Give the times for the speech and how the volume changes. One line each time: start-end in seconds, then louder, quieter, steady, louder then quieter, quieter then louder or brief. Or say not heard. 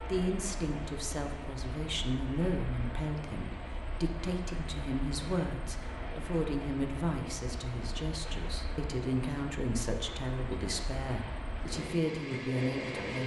0.0-13.2 steady.